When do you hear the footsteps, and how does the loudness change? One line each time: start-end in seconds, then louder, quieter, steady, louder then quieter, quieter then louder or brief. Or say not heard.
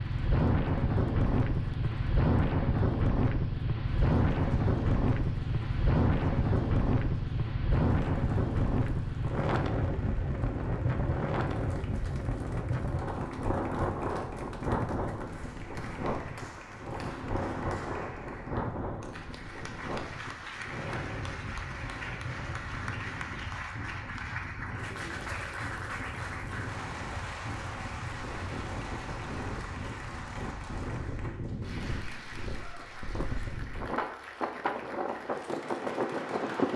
not heard.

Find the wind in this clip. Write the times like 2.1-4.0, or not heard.
0.0-36.7.